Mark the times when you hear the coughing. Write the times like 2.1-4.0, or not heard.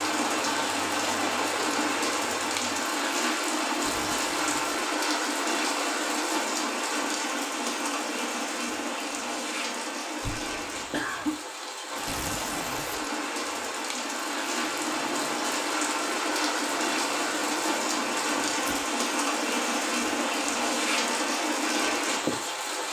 10.2-11.4.